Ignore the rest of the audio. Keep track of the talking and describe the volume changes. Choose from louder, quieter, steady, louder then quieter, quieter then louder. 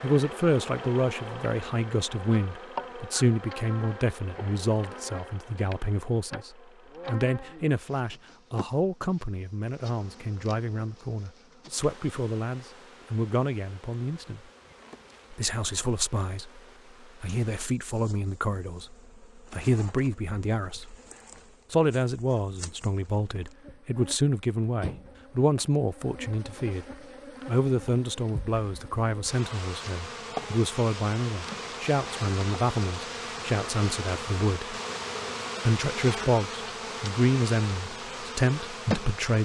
steady.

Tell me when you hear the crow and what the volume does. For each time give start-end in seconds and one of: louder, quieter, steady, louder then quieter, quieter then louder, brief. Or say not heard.
not heard.